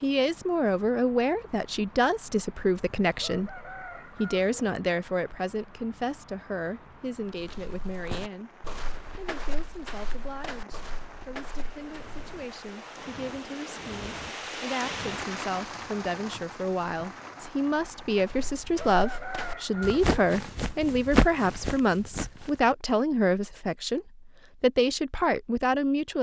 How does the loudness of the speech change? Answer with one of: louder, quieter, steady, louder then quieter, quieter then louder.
quieter then louder.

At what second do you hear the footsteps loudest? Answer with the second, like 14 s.
21 s.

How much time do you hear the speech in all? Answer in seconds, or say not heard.
26 s.